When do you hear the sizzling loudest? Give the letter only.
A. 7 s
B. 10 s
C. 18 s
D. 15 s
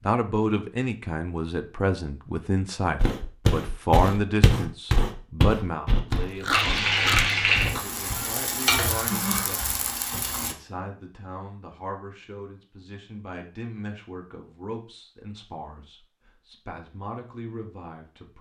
A.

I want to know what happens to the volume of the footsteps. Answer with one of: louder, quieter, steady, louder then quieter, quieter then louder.
quieter.